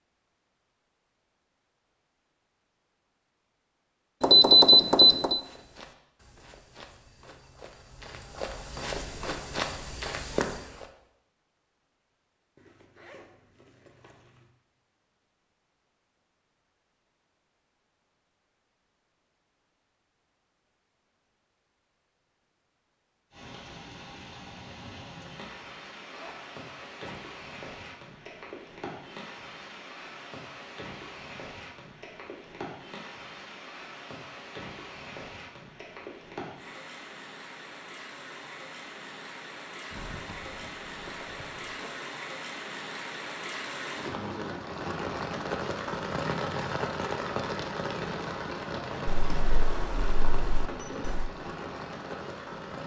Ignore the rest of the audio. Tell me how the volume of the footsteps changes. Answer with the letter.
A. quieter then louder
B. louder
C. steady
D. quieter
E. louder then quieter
B.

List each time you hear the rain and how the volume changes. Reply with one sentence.
The rain can be heard from 23.3 to 52.8 s, getting louder.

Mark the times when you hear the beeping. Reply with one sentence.
You can hear the beeping from 4.2 to 5.4 s and from 49.0 to 51.3 s.